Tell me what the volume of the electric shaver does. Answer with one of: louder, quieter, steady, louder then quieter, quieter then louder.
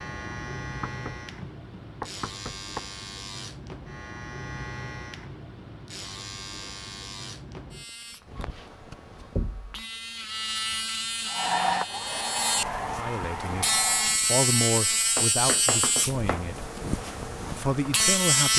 louder.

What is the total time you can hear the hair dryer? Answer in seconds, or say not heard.
3 s.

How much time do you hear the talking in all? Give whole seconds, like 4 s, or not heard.
5 s.